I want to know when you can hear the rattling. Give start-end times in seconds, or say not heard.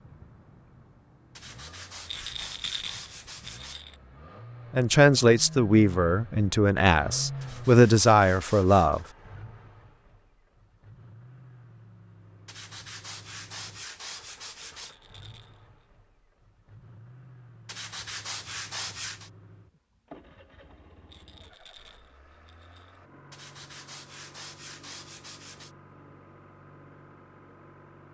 2.0-4.0, 14.8-15.6, 21.1-23.0.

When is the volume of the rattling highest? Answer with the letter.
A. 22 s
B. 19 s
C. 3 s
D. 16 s
C.